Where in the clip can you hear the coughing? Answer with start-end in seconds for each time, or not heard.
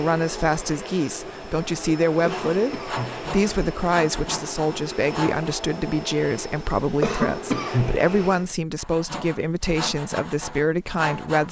2.2-3.2, 7.0-8.3.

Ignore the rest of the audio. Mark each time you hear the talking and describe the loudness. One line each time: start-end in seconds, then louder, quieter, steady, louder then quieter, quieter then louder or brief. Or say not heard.
0.0-11.4 steady.